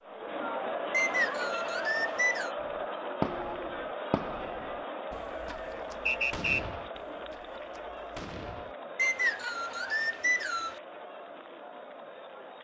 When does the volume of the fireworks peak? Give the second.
3 s.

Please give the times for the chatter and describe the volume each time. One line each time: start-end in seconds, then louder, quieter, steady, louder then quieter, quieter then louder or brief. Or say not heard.
0.0-12.5 quieter.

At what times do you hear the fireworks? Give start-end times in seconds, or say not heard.
2.6-8.8.